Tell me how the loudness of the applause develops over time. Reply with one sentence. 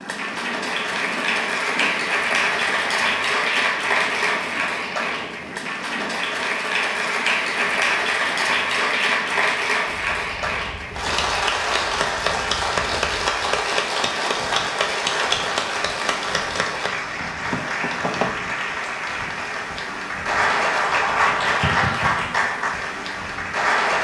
The loudness of the applause stays about the same.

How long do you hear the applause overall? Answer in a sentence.
You can hear the applause for 24 seconds altogether.